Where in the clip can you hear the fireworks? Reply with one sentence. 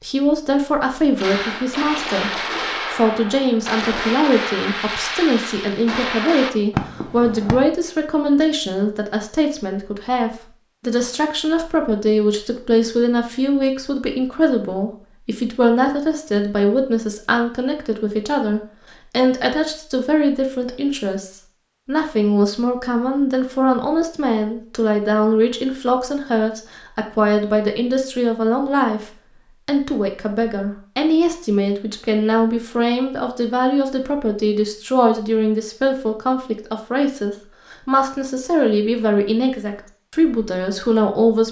The fireworks can be heard from 1.1 to 7.5 s.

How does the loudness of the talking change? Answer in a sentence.
The loudness of the talking stays about the same.